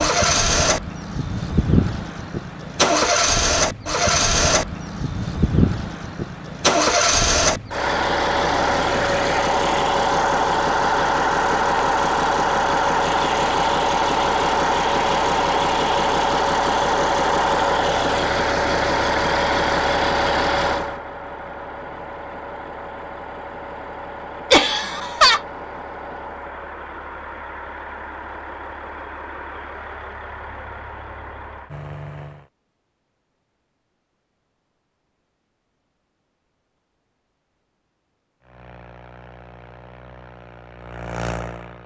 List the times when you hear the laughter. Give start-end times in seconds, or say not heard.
24.5-25.4.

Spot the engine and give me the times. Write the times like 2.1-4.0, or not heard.
0.0-32.5, 38.4-41.8.